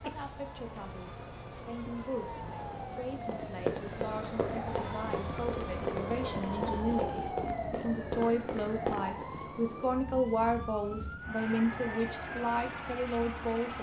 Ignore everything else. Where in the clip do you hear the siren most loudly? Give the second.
7 s.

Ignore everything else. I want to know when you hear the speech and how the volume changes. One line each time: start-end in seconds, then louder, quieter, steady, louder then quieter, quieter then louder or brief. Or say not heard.
0.0-13.7 louder.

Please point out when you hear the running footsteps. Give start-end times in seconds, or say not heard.
3.2-9.2.